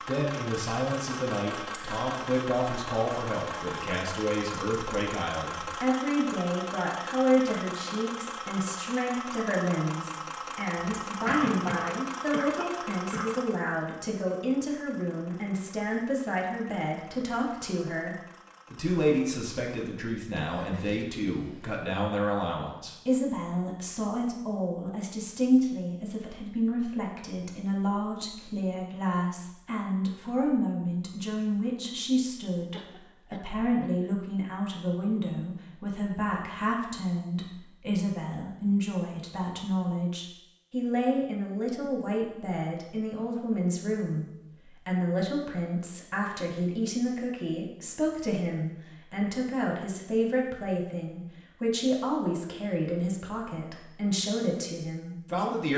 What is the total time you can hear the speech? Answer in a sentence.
You can hear the speech for 56 seconds altogether.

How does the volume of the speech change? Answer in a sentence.
The volume of the speech stays about the same.